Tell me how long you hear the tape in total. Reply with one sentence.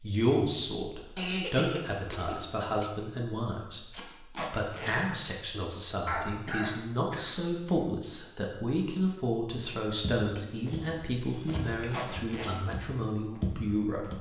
The tape can be heard for 2 seconds in total.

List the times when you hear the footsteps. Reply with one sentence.
You can hear the footsteps from 10.0 to 14.1 s.